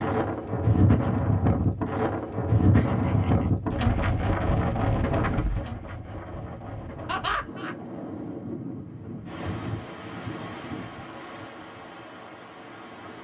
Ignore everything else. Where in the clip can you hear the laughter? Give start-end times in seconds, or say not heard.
2.7-3.5, 7.0-7.8.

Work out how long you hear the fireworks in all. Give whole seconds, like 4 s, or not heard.
not heard.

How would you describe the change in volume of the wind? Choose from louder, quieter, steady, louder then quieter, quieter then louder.
quieter.